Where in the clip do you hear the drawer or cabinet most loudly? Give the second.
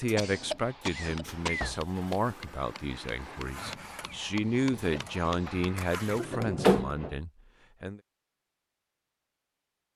7 s.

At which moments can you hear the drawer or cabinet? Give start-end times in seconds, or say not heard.
0.2-1.9, 5.2-7.2.